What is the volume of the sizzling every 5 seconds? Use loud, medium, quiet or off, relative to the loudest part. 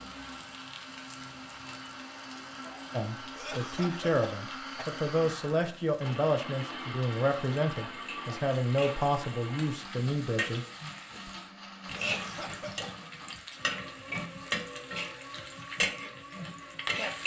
quiet, quiet, loud, loud.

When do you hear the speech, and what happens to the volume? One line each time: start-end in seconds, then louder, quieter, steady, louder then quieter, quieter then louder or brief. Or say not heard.
2.9-10.7 steady.